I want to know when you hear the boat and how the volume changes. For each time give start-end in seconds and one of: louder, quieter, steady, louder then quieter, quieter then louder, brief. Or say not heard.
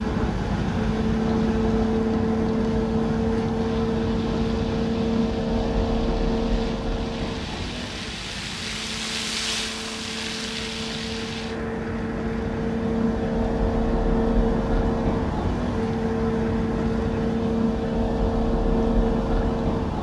0.0-19.9 quieter then louder.